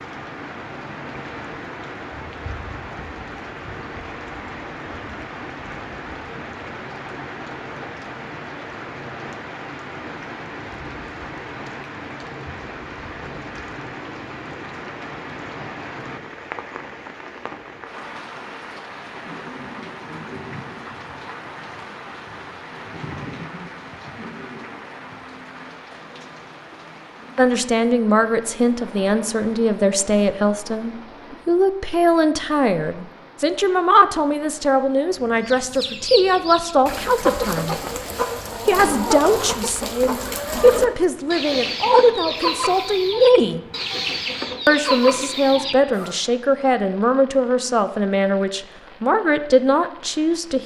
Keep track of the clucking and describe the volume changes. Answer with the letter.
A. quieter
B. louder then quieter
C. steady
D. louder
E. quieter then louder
C.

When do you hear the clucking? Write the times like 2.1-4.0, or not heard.
35.3-46.1.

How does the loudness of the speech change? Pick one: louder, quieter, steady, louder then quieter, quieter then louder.
steady.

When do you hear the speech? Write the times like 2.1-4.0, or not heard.
27.4-37.8, 38.6-43.6, 44.6-50.6.